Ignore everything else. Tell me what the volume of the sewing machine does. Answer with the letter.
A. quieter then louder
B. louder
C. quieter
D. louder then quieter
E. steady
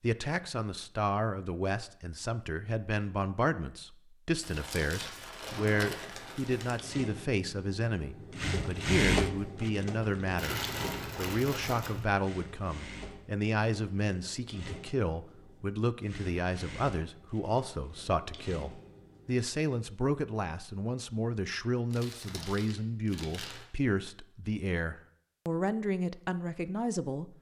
D.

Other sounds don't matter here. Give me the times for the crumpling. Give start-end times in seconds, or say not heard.
4.4-6.8, 10.3-12.1, 21.9-23.6.